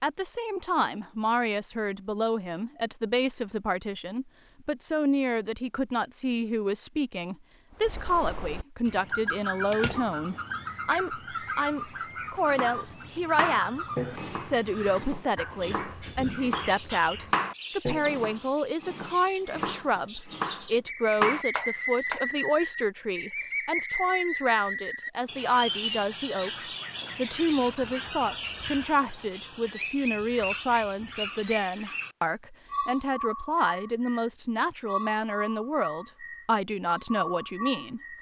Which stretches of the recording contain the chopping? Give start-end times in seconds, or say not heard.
12.4-22.2.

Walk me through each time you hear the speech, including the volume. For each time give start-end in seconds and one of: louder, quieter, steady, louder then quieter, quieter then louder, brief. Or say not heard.
0.0-38.0 steady.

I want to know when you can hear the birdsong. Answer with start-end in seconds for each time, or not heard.
7.8-38.1.